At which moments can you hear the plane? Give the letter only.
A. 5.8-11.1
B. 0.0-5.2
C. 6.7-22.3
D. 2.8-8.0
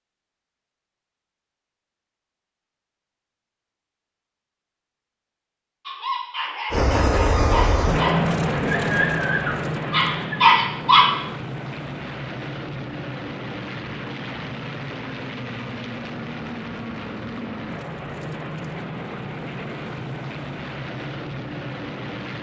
C.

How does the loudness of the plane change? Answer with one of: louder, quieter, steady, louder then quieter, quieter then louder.
quieter.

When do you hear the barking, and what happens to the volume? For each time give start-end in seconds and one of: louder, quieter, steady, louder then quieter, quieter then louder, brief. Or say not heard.
5.8-11.1 louder.